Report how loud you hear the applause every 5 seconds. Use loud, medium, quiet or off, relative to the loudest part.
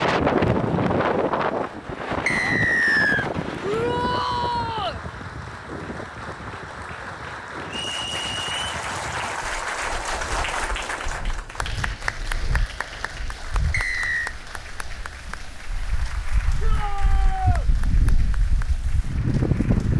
medium, loud, loud, medium.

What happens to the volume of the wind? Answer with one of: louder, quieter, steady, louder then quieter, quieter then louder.
quieter then louder.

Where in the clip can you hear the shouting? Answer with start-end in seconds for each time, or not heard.
3.6-5.0, 16.6-17.6.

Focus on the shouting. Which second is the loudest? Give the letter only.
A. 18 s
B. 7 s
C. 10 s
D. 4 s
D.